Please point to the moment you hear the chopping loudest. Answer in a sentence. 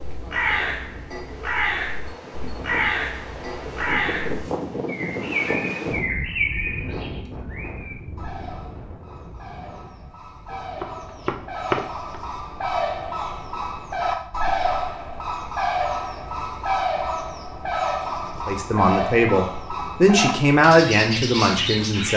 The volume of the chopping peaks at 12 seconds.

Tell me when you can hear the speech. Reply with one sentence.
You can hear the speech from 18.4 to 22.1 s.